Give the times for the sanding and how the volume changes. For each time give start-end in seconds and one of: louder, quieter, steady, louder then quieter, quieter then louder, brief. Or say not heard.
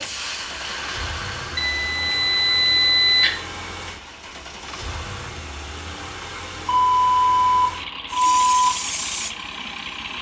not heard.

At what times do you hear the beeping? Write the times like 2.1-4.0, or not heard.
1.6-3.3, 6.7-8.6.